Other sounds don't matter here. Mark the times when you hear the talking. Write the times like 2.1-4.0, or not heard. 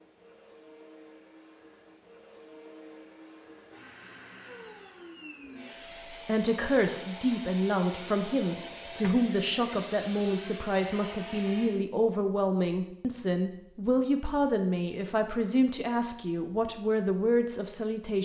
6.1-18.2.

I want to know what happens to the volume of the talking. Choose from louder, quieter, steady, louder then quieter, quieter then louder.
steady.